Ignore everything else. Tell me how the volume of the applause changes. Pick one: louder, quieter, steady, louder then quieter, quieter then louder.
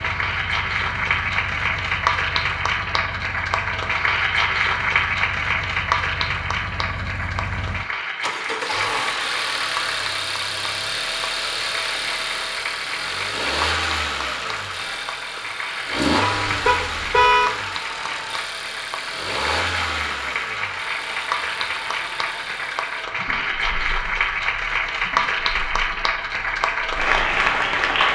quieter then louder.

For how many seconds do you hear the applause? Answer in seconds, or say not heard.
28 s.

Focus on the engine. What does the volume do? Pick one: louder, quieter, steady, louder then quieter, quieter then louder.
louder then quieter.